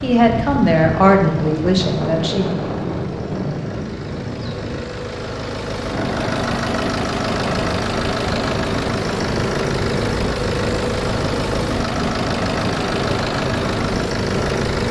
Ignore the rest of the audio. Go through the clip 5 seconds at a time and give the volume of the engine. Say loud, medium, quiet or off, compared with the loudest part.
quiet, loud, loud.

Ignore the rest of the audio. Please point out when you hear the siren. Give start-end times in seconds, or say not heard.
not heard.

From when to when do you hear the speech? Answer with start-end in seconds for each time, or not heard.
0.0-2.5.